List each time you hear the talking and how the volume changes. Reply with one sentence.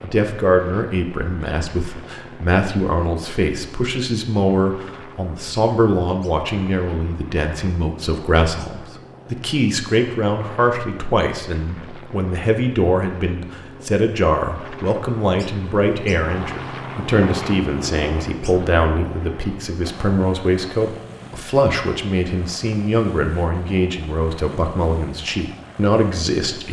The talking can be heard from 0.0 to 26.6 s, at a steady volume.